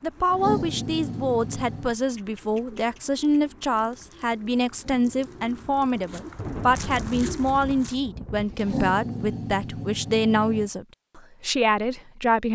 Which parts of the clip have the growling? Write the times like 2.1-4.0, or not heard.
0.3-1.9, 4.7-6.0, 8.6-10.7.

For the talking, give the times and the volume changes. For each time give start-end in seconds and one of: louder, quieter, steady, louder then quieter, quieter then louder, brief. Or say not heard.
0.0-12.5 steady.